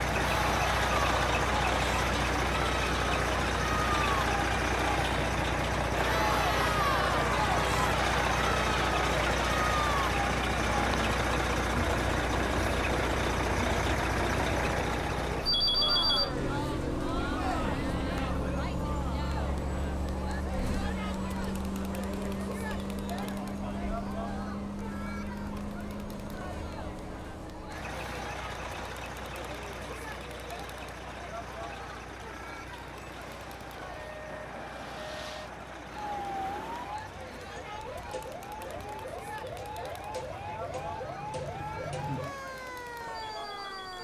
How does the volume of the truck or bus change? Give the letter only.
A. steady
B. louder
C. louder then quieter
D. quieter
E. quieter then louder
D.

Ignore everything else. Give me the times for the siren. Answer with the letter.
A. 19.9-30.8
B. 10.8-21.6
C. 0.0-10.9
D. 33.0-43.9
D.